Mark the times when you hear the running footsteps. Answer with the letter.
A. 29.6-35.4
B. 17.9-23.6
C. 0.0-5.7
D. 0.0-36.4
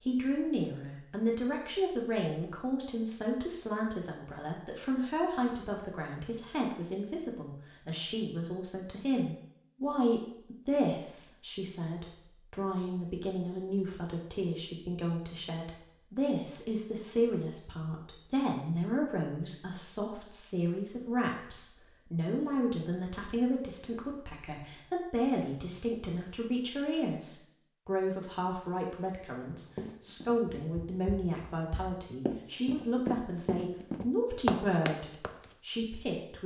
A.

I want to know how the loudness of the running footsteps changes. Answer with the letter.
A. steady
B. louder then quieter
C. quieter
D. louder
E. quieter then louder
D.